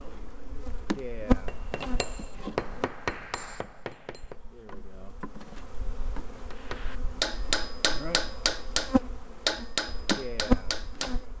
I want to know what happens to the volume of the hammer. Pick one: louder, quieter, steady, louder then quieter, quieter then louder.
louder then quieter.